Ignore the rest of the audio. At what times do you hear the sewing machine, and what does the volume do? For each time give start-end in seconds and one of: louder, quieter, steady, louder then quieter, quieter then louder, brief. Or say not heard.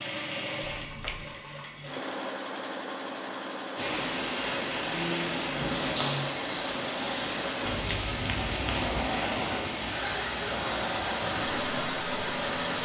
0.0-12.8 steady.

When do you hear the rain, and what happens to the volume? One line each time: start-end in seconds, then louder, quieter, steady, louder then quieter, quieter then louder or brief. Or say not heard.
3.8-12.8 steady.